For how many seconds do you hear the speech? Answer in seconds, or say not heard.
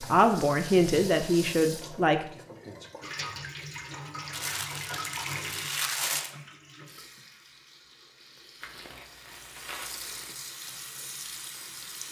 2 s.